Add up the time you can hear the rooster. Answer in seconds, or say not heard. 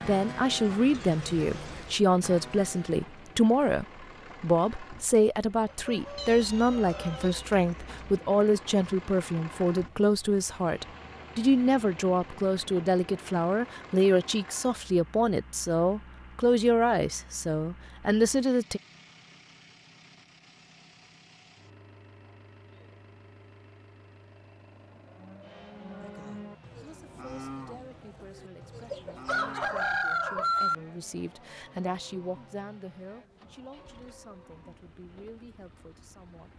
4 s.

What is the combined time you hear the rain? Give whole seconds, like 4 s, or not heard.
not heard.